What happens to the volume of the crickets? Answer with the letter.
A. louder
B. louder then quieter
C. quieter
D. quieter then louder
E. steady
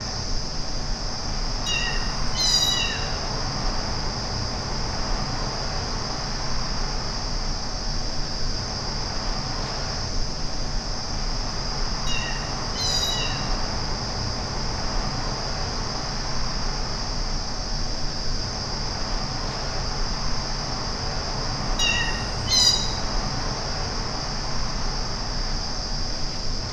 E.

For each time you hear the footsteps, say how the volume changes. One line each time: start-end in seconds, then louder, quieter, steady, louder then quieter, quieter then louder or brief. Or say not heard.
not heard.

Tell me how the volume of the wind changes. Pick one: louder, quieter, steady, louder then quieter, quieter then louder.
steady.